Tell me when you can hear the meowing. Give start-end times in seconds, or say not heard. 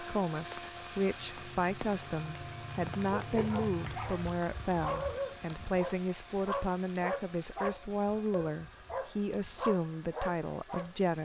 not heard.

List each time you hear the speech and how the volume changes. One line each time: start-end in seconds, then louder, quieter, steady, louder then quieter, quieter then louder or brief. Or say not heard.
0.0-11.2 steady.